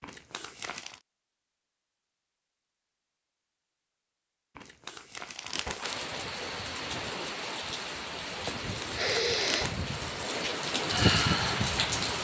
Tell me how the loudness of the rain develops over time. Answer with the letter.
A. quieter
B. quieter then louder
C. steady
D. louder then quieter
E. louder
E.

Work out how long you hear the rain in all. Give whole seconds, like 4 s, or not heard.
6 s.